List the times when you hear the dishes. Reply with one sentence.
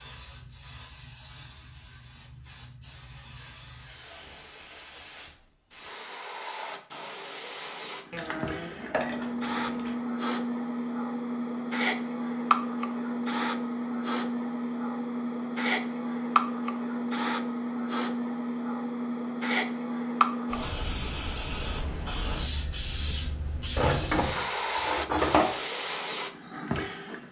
You can hear the dishes from 8.1 to 9.9 s and from 23.8 to 25.5 s.